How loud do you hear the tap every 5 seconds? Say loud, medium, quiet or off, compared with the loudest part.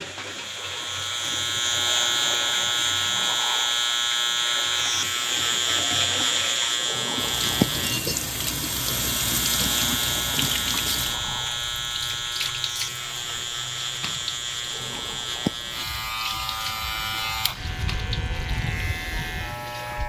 medium, loud, loud, medium.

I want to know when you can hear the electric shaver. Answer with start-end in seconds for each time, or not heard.
0.0-20.0.